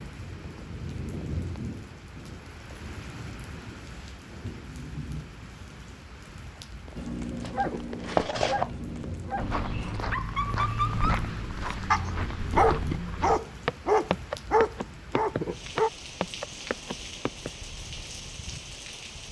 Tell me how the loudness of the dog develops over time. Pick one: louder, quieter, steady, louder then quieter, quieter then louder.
louder.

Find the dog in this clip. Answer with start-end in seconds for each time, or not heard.
7.0-15.9.